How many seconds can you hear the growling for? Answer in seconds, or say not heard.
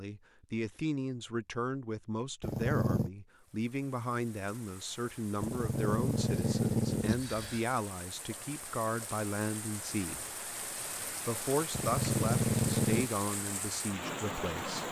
4 s.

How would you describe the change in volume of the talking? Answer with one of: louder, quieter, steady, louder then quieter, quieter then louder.
steady.